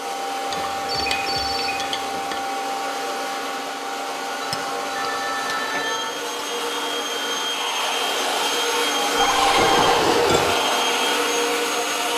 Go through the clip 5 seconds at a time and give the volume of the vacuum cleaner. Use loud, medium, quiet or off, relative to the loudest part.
medium, loud, loud.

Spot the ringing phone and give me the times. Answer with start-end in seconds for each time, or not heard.
0.8-1.8, 4.4-6.2, 9.2-9.9.